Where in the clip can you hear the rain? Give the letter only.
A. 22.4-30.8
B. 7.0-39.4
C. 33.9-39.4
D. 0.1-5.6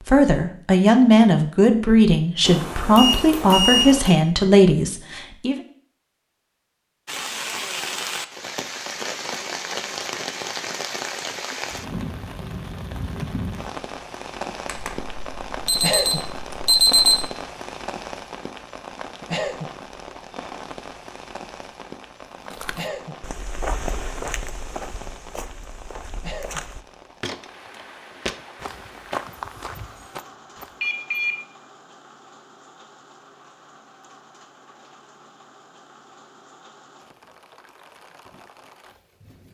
B.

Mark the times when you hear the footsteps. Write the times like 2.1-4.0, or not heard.
22.4-30.8.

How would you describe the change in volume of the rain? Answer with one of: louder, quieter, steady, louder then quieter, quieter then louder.
quieter.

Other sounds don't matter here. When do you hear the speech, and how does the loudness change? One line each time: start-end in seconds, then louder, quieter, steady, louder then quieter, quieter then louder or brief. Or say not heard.
0.1-5.6 steady.